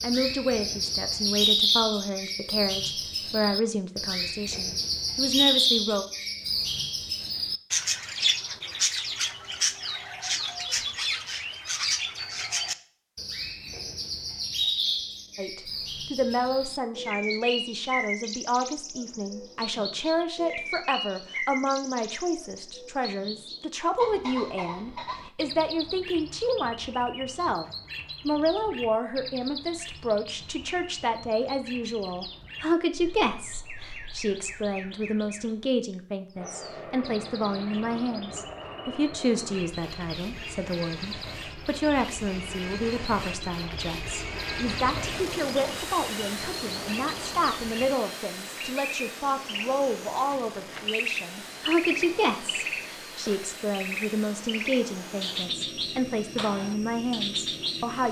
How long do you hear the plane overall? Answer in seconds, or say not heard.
22 s.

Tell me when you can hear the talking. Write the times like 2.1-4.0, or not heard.
0.0-6.0, 15.3-58.0.